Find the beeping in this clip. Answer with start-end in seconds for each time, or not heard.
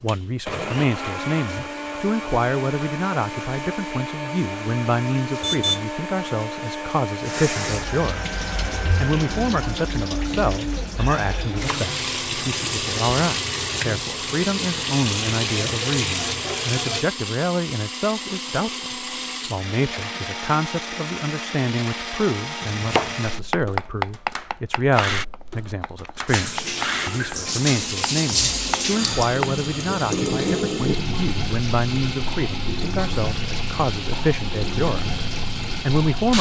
5.4-5.8.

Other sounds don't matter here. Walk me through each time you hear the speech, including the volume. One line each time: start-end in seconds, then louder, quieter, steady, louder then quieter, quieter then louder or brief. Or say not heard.
0.0-36.3 steady.